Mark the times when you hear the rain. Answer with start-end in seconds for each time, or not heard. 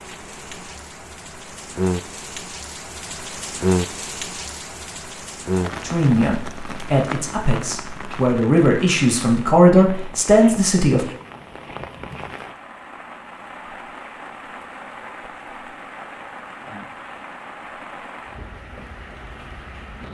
0.0-20.0.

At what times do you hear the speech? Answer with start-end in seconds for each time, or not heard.
5.8-11.1.